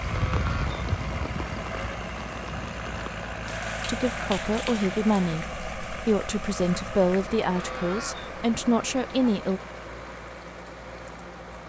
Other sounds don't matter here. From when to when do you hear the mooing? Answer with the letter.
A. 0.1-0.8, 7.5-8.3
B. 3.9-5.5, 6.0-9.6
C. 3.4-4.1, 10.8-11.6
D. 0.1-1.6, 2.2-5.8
A.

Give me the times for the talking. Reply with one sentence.
You can hear the talking from 3.9 to 5.5 s and from 6.0 to 9.6 s.